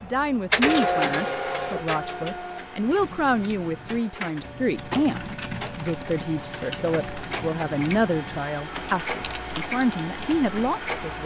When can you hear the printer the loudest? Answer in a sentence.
The loudest moment of the printer is at 1 second.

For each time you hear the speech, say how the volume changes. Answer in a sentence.
You can hear the speech from 0.0 to 11.2 s, at a steady volume.